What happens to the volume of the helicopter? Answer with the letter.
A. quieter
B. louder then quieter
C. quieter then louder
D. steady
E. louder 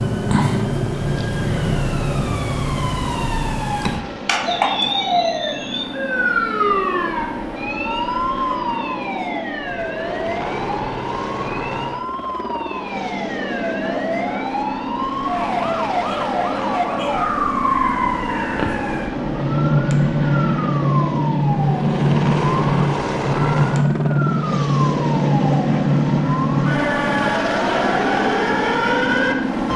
E.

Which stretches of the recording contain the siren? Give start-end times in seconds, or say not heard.
0.0-29.7.